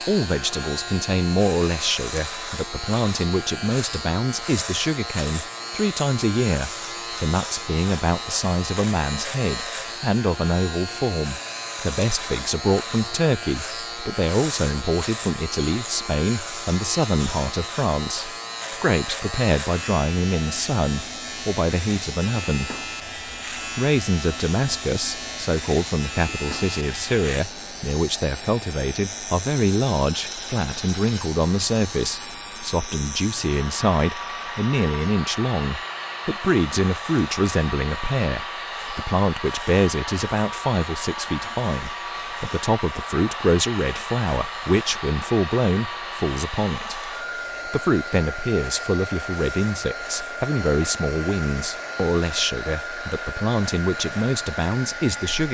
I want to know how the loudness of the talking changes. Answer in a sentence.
The volume of the talking stays about the same.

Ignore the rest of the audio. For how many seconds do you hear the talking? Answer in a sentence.
The talking can be heard for 54 seconds in total.